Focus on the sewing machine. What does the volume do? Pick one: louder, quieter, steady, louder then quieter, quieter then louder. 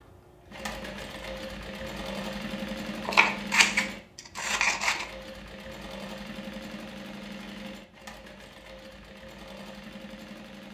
quieter.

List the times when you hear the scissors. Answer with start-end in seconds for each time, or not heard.
3.0-5.0.